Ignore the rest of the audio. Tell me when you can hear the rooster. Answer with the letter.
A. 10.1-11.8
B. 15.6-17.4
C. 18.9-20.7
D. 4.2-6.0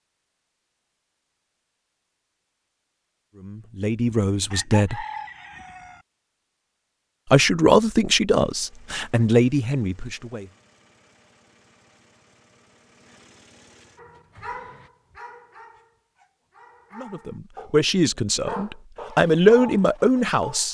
D.